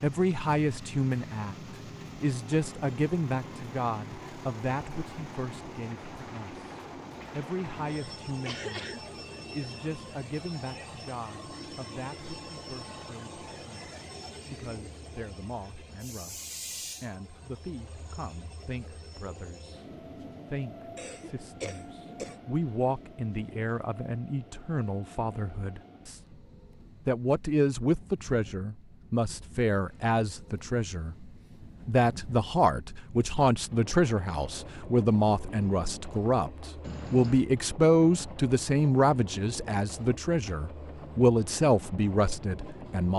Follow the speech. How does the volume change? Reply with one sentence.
The loudness of the speech goes down, then up.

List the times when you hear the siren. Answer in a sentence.
You can't hear the siren here.